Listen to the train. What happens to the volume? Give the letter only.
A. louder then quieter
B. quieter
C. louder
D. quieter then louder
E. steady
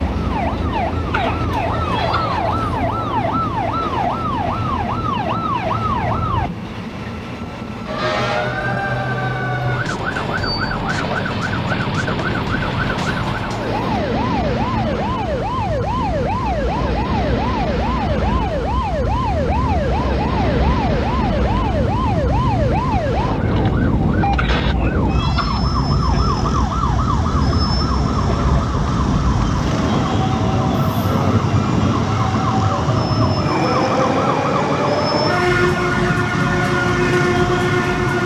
C.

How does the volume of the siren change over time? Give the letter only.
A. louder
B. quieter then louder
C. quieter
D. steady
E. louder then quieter
D.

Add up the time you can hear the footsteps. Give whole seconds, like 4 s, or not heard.
not heard.